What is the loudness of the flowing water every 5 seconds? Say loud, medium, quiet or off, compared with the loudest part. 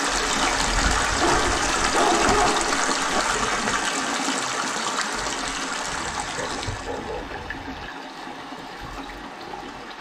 loud, medium.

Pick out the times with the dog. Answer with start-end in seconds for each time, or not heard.
1.2-3.2, 5.9-7.9.